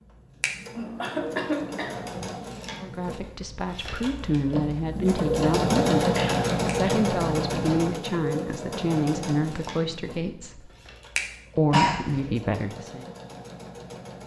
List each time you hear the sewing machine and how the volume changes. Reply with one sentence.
You can hear the sewing machine from 0.0 to 14.2 s, getting louder then quieter.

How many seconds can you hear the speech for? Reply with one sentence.
The speech can be heard for 9 seconds in total.